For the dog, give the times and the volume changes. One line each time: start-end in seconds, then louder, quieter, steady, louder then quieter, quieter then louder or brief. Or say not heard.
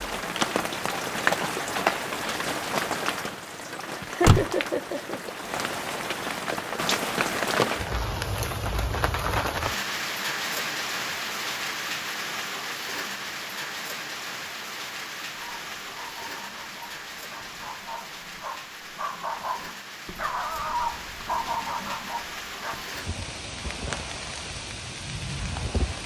15.3-22.9 louder.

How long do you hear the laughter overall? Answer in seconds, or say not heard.
2 s.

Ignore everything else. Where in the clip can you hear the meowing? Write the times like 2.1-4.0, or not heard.
not heard.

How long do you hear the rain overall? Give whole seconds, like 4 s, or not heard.
26 s.